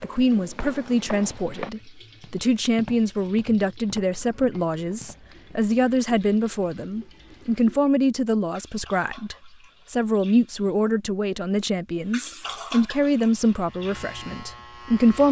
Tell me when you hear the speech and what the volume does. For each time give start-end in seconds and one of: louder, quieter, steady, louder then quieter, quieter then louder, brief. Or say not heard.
0.0-15.2 steady.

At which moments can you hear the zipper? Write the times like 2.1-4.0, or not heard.
not heard.